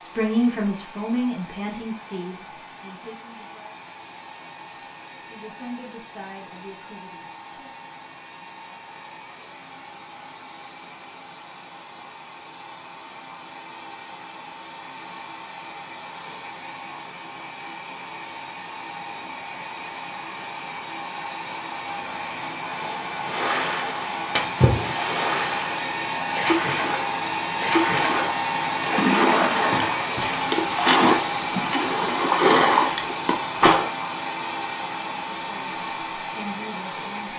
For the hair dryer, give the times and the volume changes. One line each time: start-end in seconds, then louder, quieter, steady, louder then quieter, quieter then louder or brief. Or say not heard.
0.0-37.3 louder.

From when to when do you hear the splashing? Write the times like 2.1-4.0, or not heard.
23.2-33.9.